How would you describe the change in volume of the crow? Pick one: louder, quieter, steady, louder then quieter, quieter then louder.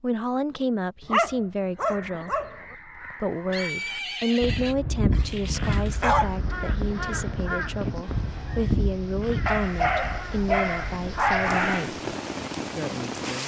louder then quieter.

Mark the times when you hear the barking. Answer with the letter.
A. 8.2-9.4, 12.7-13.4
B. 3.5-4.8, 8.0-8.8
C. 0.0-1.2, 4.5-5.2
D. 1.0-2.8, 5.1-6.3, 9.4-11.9
D.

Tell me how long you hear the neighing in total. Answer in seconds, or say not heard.
2 s.